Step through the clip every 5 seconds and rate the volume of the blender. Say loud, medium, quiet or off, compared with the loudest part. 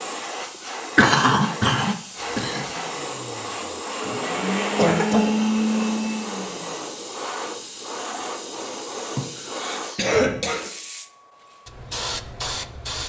medium, loud, off.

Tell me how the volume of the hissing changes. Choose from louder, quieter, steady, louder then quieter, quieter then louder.
steady.